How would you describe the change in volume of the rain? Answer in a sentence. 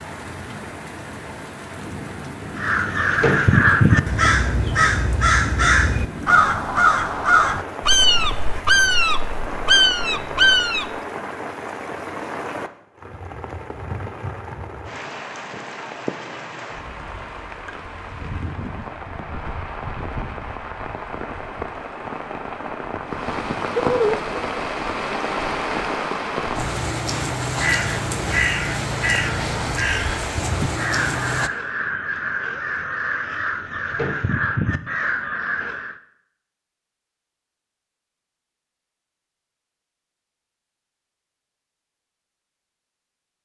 The loudness of the rain goes up.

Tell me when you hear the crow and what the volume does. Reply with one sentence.
The crow can be heard from 2.5 to 10.9 s, at a steady volume; and from 27.6 to 36.0 s, at a steady volume.